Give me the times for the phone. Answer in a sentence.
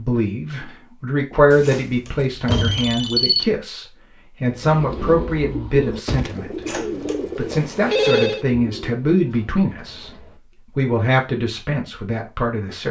You can hear the phone from 1.5 to 3.5 s and from 7.5 to 8.4 s.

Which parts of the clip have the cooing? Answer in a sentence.
You can hear the cooing from 4.5 to 10.4 s.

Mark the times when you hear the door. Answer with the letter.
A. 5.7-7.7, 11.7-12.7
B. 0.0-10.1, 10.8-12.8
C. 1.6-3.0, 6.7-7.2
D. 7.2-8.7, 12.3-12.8
C.